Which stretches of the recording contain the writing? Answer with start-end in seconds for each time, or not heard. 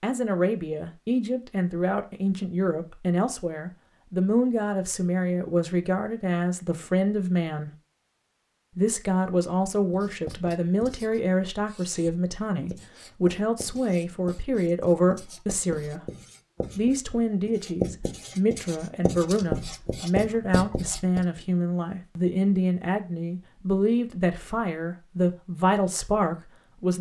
9.9-21.2.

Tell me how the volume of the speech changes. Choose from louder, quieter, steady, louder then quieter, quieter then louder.
steady.